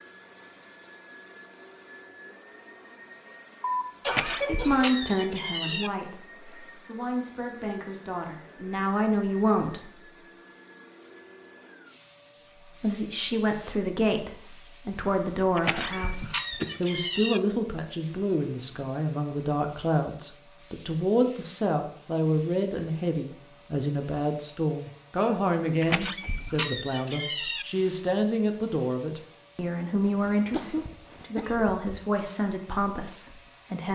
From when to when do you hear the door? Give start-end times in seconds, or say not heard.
4.0-5.9, 15.6-17.4, 25.8-27.6.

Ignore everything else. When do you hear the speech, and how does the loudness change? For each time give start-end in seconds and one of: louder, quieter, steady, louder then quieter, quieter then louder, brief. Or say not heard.
4.5-9.9 quieter then louder
12.7-33.9 steady.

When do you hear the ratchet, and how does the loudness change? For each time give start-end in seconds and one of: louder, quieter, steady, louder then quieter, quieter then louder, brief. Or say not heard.
not heard.